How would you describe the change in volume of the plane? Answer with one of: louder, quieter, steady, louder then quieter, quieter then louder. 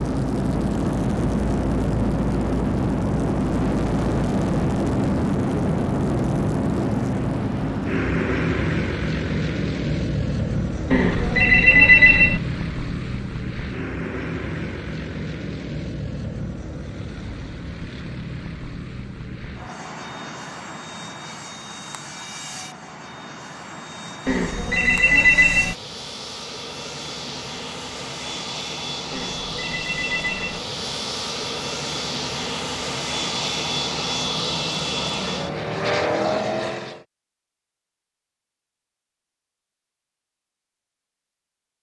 quieter then louder.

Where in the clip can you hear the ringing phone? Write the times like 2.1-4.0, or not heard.
10.9-12.4, 24.2-25.8, 29.1-30.6.